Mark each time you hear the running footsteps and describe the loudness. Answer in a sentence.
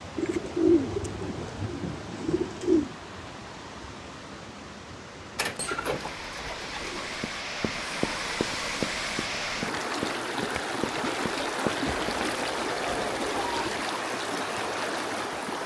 The running footsteps can be heard from 7.2 to 12.2 s, at a steady volume.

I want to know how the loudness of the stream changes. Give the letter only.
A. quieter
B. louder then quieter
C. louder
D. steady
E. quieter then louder
C.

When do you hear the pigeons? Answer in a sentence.
The pigeons can be heard from 0.1 to 2.9 s, from 5.3 to 7.2 s and from 11.8 to 13.7 s.